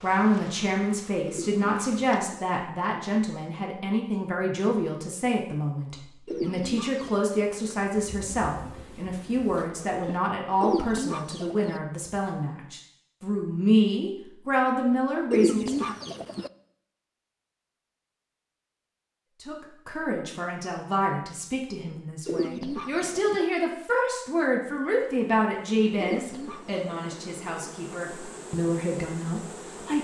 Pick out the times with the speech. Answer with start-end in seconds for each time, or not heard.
0.0-15.9, 19.4-29.9.